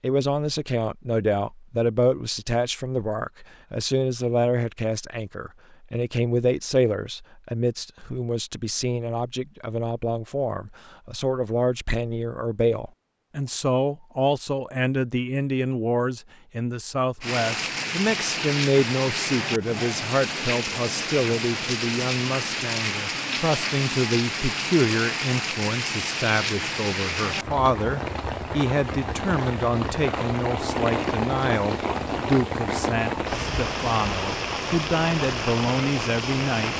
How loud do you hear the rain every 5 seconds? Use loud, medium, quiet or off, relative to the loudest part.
off, off, off, loud, loud, loud, loud, loud.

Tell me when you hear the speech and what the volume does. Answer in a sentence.
The speech can be heard from 0.0 to 36.7 s, at a steady volume.